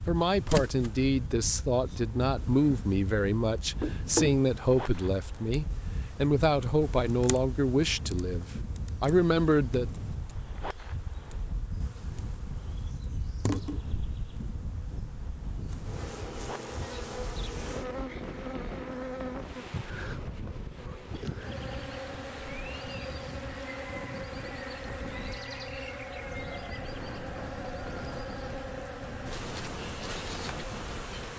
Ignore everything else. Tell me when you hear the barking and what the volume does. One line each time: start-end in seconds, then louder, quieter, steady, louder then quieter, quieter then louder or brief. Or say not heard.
not heard.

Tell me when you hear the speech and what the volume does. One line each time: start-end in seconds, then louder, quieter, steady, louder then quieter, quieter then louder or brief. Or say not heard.
0.1-9.9 steady.